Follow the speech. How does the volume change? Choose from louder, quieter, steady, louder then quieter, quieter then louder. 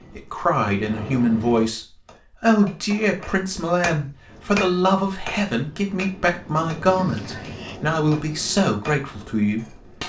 steady.